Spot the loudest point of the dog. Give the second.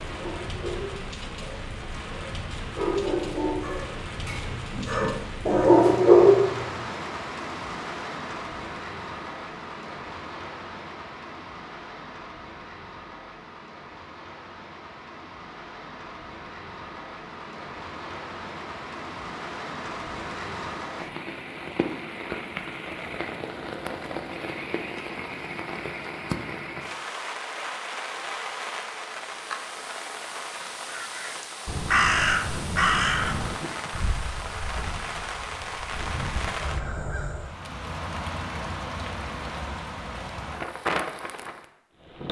6 s.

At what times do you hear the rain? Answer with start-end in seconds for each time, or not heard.
0.0-42.2.